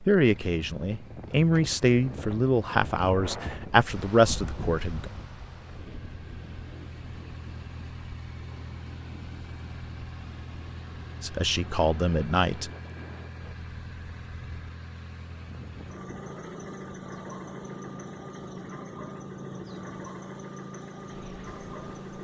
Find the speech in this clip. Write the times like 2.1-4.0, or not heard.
0.0-5.1, 11.2-12.7.